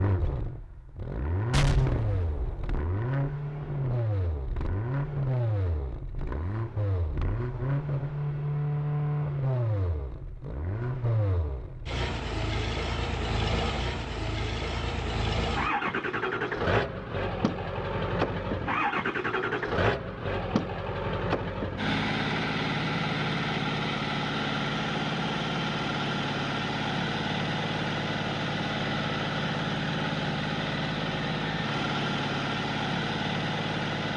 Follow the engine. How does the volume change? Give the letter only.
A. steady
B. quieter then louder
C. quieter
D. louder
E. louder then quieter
A.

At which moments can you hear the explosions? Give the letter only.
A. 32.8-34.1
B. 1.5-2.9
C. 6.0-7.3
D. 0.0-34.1
B.